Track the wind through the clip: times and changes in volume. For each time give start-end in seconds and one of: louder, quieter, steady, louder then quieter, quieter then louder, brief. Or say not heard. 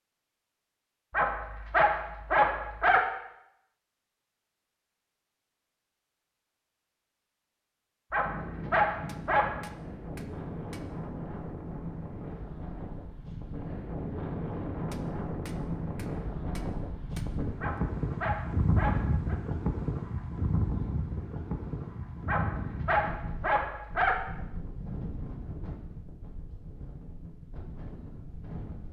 8.2-28.8 louder then quieter.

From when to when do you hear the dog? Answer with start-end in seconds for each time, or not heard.
1.1-3.0, 8.1-9.6, 17.6-19.4, 22.2-24.1.